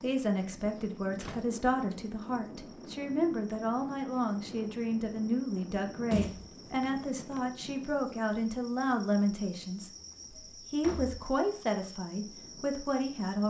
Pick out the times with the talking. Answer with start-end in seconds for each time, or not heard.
0.0-9.9, 10.7-13.4.